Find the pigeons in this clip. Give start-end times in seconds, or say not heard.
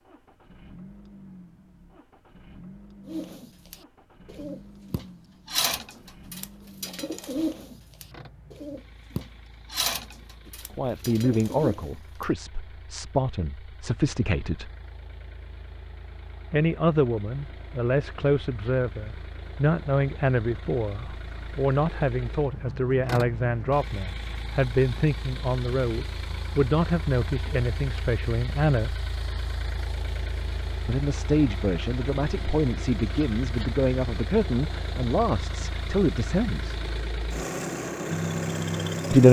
3.0-12.2.